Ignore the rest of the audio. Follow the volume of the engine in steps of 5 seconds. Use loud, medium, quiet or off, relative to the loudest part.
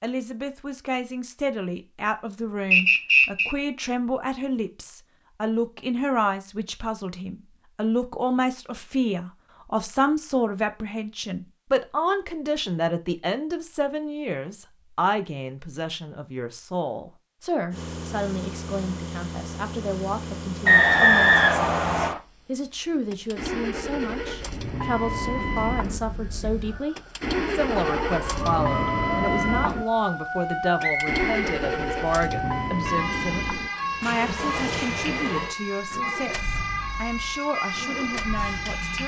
off, off, off, medium, medium, loud, loud, medium.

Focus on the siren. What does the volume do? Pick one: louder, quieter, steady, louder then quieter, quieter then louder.
louder.